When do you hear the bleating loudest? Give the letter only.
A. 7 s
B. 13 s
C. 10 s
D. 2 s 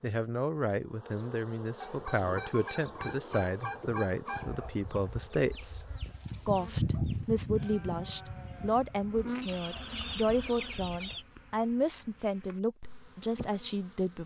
A.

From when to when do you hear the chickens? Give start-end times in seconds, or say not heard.
1.8-4.5, 9.4-11.2.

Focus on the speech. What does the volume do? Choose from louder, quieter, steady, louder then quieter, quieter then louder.
steady.